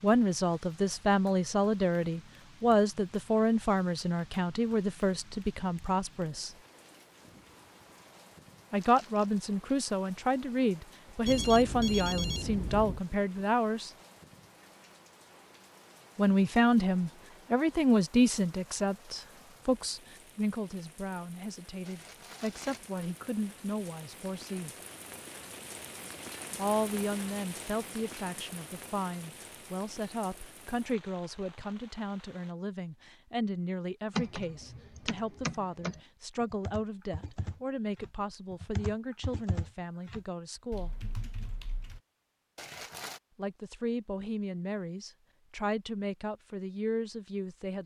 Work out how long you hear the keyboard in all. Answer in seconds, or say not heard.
8 s.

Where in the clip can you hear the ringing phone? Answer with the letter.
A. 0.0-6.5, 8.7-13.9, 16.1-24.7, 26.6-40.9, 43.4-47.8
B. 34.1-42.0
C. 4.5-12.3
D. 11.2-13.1
D.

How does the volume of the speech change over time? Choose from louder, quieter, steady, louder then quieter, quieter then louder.
quieter.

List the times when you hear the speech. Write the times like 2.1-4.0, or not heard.
0.0-6.5, 8.7-13.9, 16.1-24.7, 26.6-40.9, 43.4-47.8.